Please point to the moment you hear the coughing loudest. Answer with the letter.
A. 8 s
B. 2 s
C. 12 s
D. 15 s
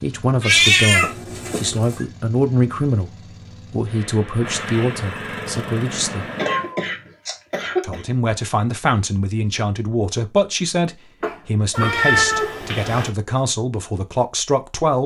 A.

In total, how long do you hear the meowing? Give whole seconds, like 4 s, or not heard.
4 s.